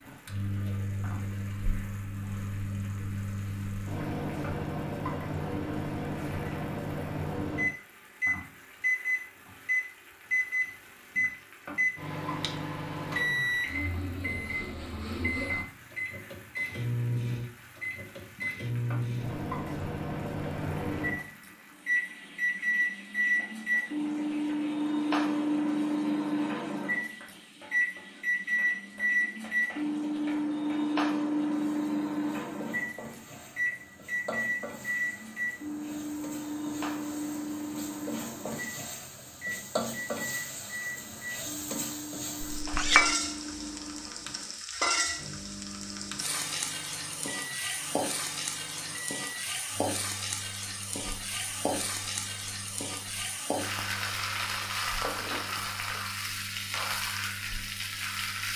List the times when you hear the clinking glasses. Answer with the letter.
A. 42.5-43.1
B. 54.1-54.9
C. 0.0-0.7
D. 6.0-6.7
A.